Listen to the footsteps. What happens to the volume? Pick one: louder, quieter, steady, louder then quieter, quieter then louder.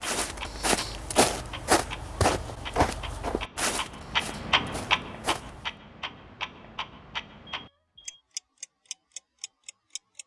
quieter.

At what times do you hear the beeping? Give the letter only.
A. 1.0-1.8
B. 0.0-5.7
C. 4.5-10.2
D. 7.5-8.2
D.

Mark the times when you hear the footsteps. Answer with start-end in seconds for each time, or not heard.
0.0-5.7.